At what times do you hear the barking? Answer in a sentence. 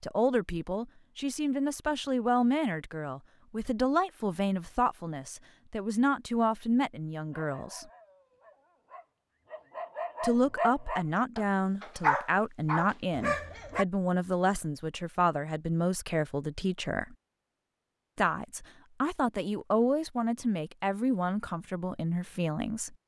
The barking can be heard from 7.2 to 13.8 s.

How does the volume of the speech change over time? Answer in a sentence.
The loudness of the speech stays about the same.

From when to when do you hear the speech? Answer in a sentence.
You can hear the speech from 0.0 to 7.8 s, from 10.2 to 17.1 s and from 18.1 to 22.9 s.